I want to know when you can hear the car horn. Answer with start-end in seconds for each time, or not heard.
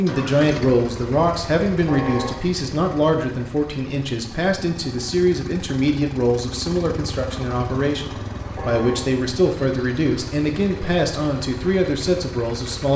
1.9-2.4, 8.6-9.1.